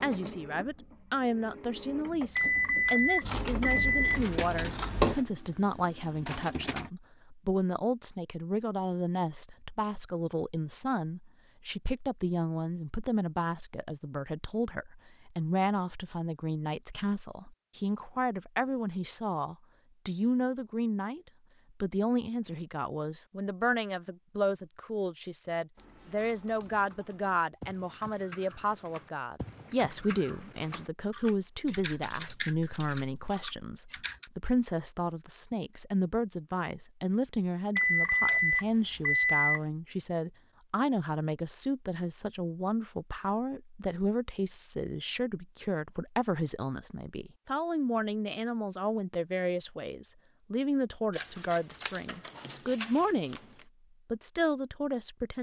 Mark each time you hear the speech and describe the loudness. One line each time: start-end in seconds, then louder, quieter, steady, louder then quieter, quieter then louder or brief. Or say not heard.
0.0-21.2 steady
21.8-53.4 steady
54.1-55.3 brief.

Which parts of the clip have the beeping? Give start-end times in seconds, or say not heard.
2.4-4.2, 37.8-39.6.